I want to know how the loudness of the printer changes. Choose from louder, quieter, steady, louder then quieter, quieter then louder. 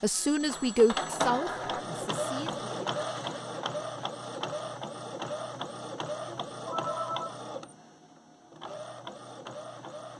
quieter.